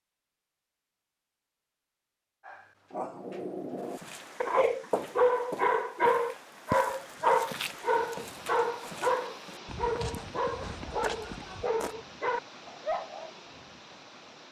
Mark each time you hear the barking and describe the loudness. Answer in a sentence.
You can hear the barking from 2.5 to 13.3 s, getting louder then quieter.